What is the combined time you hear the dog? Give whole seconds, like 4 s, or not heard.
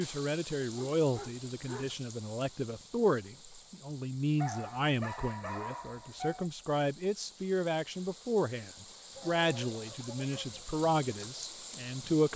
5 s.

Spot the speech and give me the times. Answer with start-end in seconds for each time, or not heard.
0.0-12.3.